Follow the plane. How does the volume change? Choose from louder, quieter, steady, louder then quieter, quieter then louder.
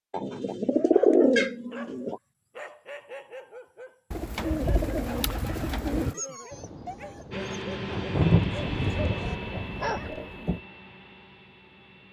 quieter.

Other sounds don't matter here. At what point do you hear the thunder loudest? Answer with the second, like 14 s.
8 s.